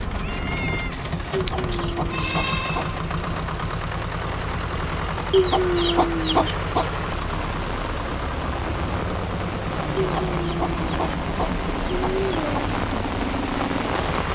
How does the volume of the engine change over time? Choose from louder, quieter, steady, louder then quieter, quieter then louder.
steady.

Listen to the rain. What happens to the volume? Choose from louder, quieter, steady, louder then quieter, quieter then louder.
louder.